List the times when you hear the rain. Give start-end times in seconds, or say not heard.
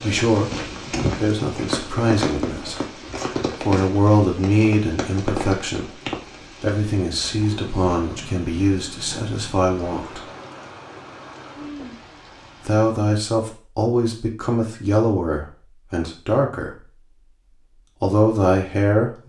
0.0-12.8.